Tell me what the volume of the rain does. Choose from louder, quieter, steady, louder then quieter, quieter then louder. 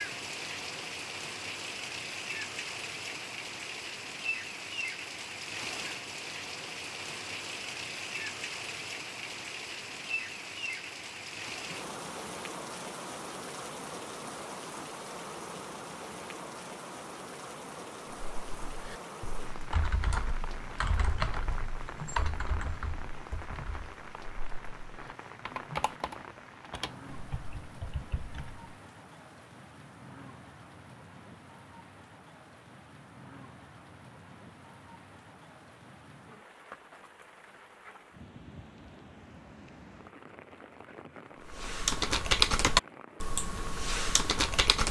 quieter.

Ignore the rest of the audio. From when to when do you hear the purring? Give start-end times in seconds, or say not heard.
not heard.